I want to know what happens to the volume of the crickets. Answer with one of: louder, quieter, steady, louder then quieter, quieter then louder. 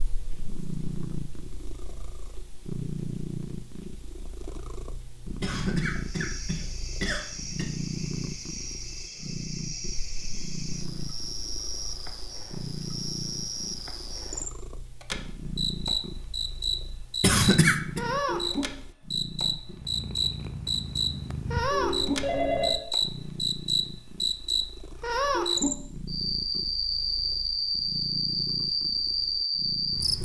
louder.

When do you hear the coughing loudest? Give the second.
18 s.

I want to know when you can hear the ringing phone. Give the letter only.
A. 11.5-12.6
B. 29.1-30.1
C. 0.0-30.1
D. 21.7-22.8
D.